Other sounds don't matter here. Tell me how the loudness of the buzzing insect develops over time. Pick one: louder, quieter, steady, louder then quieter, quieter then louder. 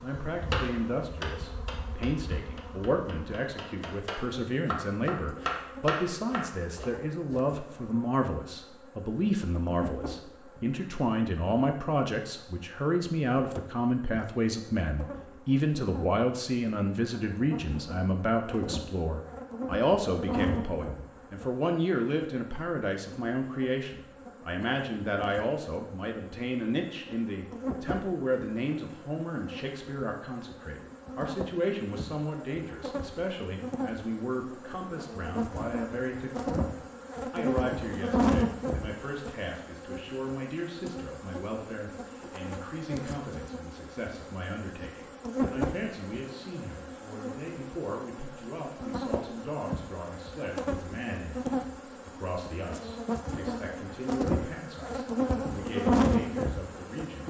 louder.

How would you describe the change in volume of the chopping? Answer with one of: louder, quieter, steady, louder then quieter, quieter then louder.
quieter then louder.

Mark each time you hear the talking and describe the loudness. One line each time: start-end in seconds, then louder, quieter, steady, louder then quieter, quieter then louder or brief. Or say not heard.
0.0-57.2 quieter.